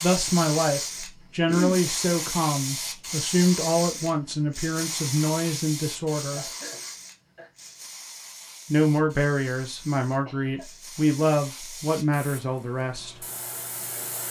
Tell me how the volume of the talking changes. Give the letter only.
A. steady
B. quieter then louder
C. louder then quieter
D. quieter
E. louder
A.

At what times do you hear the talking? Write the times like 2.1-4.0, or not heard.
0.0-6.5, 8.7-13.2.